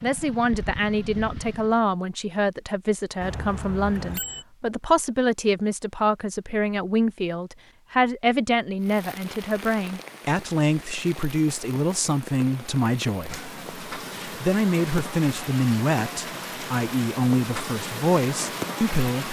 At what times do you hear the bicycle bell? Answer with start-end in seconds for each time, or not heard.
3.2-4.5.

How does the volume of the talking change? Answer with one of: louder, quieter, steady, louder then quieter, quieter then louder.
steady.